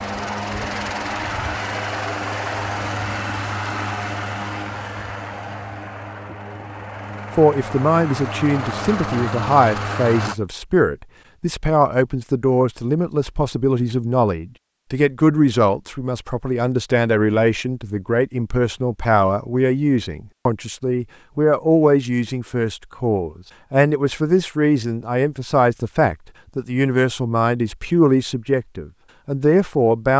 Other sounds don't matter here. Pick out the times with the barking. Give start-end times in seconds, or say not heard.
not heard.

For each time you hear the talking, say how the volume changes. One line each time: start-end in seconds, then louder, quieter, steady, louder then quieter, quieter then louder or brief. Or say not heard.
7.3-30.1 steady.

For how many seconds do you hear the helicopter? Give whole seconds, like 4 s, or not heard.
10 s.